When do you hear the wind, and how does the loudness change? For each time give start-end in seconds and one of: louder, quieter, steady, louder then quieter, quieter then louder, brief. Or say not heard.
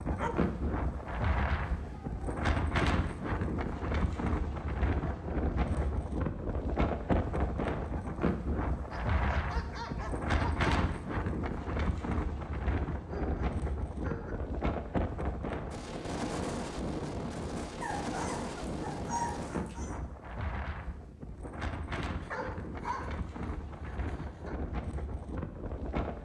0.0-26.2 quieter.